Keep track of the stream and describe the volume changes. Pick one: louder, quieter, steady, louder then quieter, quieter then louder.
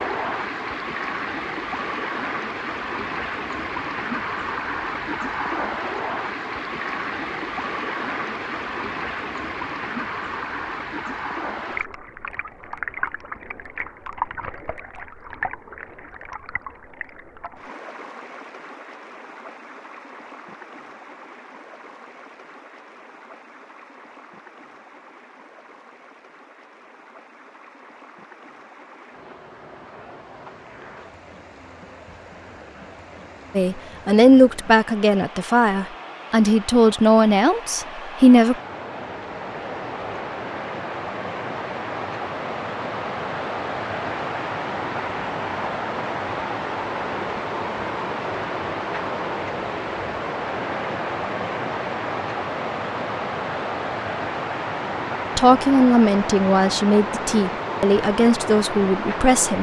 quieter then louder.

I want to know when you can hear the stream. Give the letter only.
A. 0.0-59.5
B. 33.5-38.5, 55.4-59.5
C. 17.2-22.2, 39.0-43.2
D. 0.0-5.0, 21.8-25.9
A.